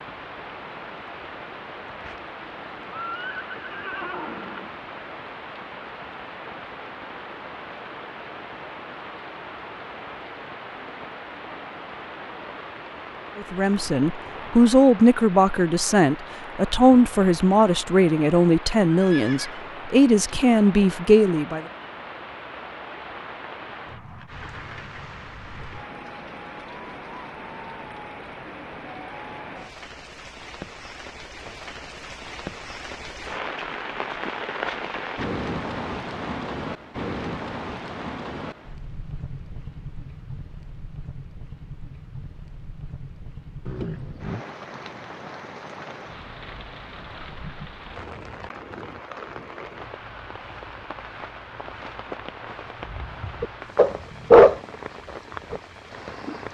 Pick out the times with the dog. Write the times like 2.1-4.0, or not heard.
52.9-56.4.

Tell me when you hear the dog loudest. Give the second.
54 s.